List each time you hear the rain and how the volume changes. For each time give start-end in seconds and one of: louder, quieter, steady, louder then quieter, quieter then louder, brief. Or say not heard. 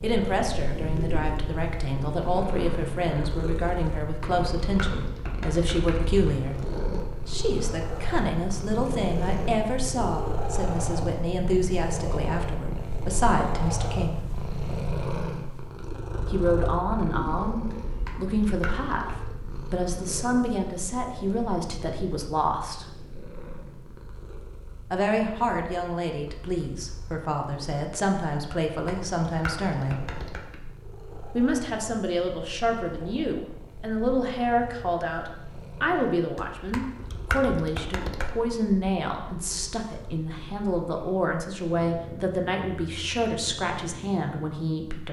not heard.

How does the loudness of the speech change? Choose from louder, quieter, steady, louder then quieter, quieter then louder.
steady.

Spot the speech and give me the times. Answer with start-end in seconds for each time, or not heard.
0.0-14.2, 16.2-22.9, 24.9-30.1, 31.4-45.0.